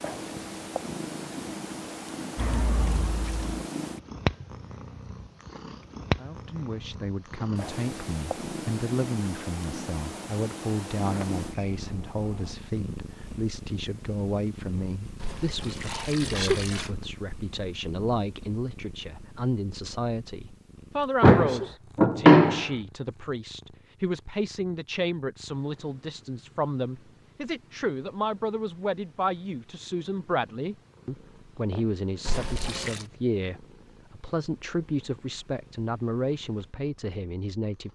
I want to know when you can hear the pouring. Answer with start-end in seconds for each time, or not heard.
2.4-3.6, 15.2-16.9, 32.2-33.0.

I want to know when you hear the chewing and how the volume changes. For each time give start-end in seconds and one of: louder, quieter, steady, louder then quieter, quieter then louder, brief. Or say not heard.
not heard.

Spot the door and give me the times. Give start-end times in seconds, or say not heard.
11.0-12.6, 21.2-22.6.